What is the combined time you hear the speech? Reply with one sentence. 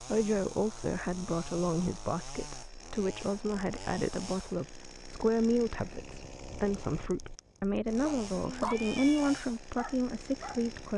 The speech can be heard for 11 seconds in total.